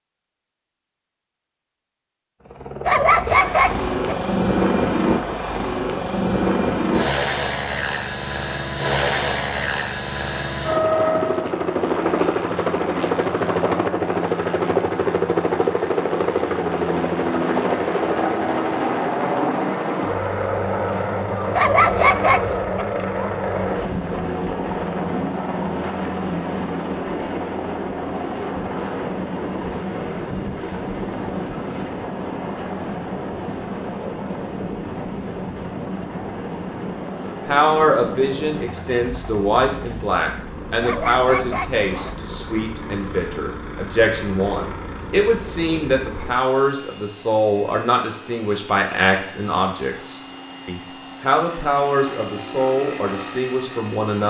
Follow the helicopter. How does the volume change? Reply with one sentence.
The volume of the helicopter goes down.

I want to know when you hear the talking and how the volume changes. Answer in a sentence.
The talking can be heard from 37.5 to 54.2 s, at a steady volume.